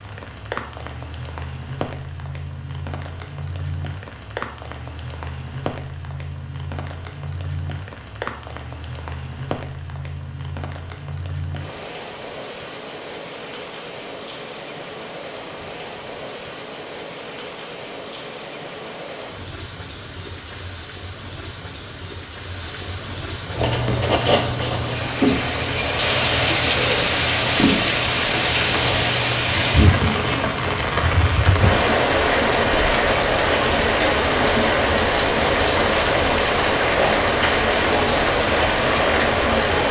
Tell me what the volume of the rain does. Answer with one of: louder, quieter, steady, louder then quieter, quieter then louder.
louder.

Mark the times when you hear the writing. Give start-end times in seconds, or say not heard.
23.5-30.4.